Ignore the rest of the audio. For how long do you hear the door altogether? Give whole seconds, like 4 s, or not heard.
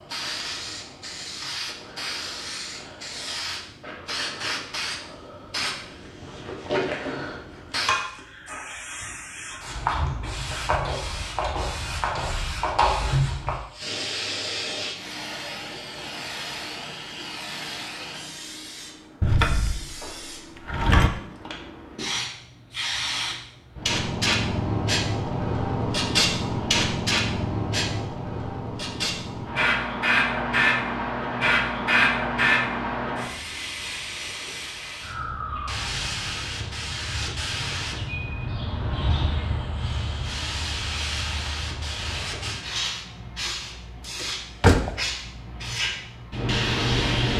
3 s.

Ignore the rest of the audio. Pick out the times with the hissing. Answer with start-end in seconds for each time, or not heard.
0.1-47.3.